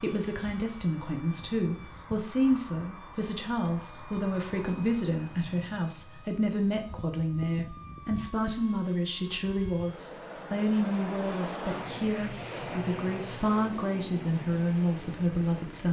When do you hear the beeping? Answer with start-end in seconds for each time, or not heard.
not heard.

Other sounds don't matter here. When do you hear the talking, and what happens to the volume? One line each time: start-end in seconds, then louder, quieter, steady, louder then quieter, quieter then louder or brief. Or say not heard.
0.0-15.8 steady.